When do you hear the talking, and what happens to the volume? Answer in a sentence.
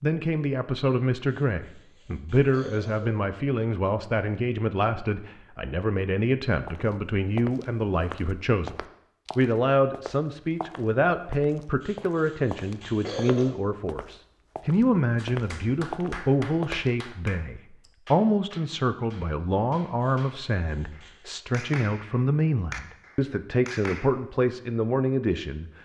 The talking can be heard from 0.0 to 8.8 s, at a steady volume; and from 9.3 to 25.7 s, at a steady volume.